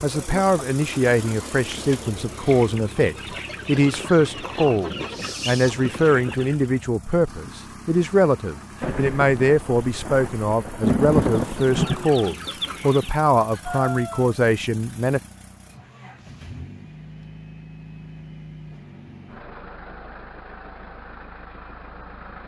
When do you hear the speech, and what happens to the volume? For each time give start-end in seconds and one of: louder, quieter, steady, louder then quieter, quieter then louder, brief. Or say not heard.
0.0-15.2 steady.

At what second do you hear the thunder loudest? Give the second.
11 s.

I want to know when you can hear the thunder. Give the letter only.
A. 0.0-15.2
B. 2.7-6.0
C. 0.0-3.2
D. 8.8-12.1
D.